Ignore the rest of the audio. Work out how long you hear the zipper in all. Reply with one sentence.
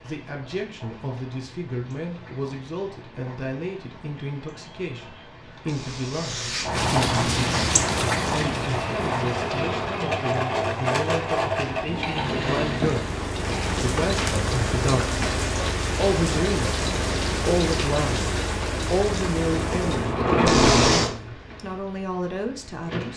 The zipper can be heard for 3 seconds in total.